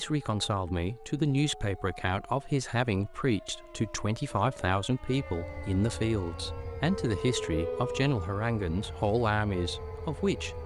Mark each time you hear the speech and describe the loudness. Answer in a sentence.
You can hear the speech from 0.0 to 10.6 s, at a steady volume.